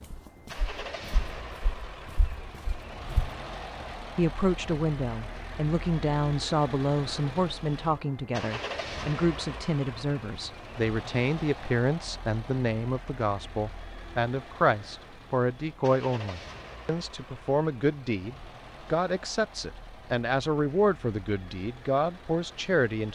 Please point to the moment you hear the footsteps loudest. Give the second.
3 s.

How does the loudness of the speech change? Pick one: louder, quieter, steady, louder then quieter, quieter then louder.
steady.